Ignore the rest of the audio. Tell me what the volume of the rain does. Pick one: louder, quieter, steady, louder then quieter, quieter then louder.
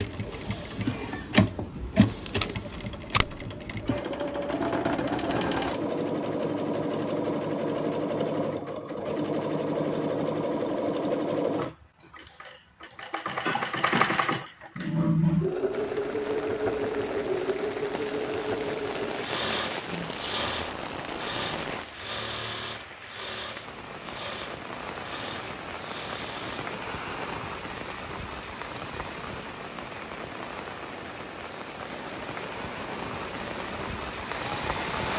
steady.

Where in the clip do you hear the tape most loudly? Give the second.
3 s.